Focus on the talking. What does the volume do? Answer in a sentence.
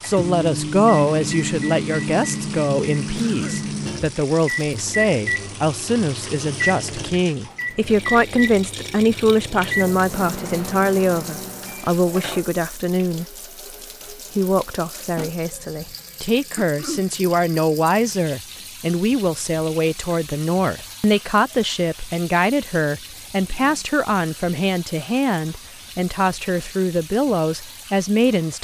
The volume of the talking stays about the same.